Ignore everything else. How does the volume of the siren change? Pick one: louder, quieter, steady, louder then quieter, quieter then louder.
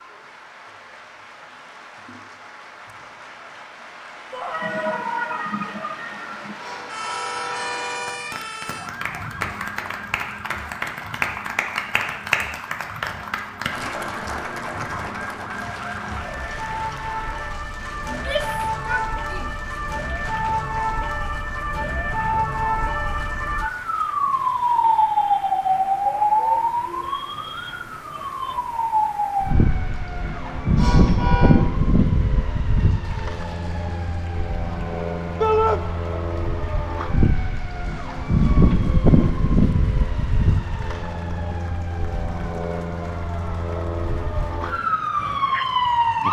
louder.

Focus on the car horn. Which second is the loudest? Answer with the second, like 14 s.
31 s.